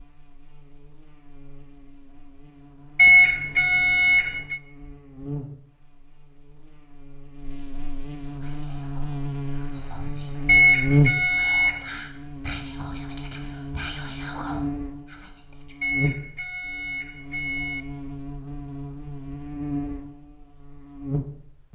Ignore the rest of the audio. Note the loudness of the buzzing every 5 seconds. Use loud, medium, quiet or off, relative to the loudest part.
quiet, medium, loud, medium, medium.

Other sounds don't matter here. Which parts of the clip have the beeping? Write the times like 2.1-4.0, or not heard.
3.0-4.6, 10.4-11.8, 15.8-17.9.